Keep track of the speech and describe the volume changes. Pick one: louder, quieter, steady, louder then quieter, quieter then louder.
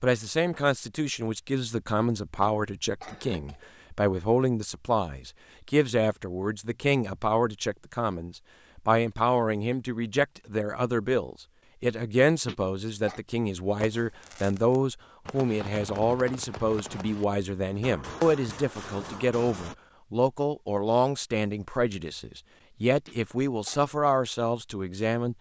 steady.